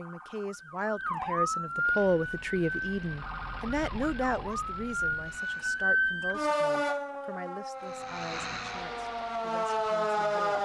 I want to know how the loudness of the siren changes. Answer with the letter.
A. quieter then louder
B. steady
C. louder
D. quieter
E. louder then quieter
A.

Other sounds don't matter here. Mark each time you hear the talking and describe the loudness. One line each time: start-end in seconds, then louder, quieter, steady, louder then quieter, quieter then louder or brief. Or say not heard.
0.0-10.6 quieter.